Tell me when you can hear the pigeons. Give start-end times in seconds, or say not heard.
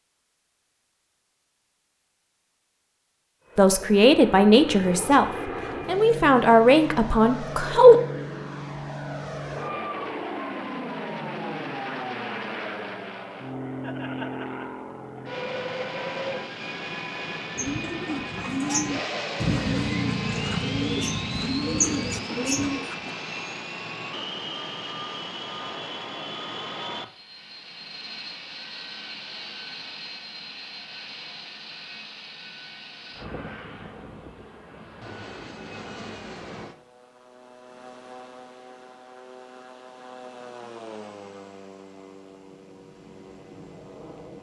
17.6-23.1.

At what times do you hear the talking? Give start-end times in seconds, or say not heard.
3.5-8.0.